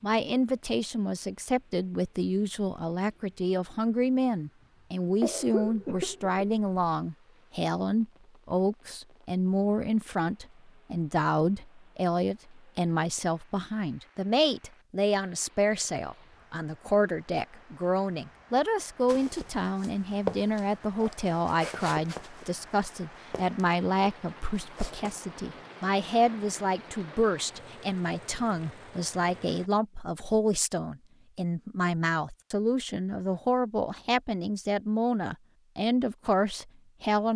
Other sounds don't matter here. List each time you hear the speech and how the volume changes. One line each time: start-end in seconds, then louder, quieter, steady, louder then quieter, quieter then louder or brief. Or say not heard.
0.0-37.3 steady.